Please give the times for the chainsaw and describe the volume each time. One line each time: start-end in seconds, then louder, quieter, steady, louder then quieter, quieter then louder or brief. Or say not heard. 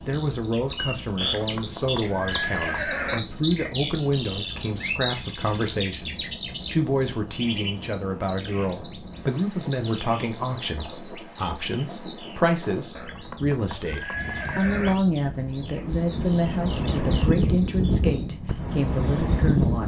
not heard.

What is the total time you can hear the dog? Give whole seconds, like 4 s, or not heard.
not heard.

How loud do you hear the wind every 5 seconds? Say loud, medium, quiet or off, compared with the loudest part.
quiet, quiet, quiet, loud.